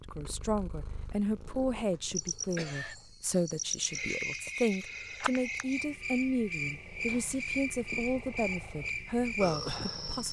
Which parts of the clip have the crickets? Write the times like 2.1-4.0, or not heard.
2.1-10.2.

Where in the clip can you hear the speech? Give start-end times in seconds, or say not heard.
0.1-10.2.